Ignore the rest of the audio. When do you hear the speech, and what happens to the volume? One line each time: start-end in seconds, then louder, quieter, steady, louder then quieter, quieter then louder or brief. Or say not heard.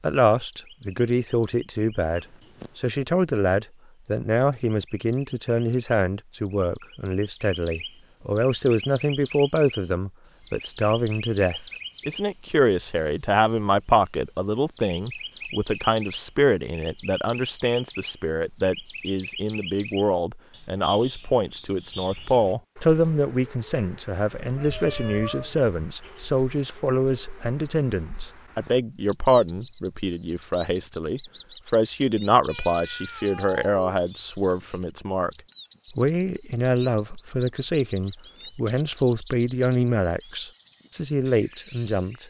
0.0-35.3 steady
35.9-42.2 steady.